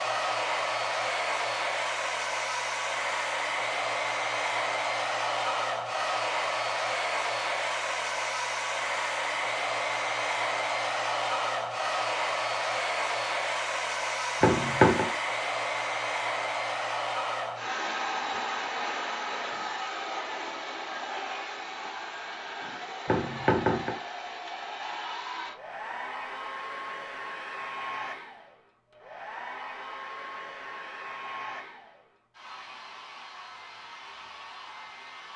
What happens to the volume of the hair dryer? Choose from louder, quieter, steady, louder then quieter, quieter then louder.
quieter.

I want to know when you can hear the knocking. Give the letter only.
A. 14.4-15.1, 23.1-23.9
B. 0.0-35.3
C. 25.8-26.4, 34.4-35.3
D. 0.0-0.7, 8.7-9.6
A.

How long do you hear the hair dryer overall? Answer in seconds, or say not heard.
35 s.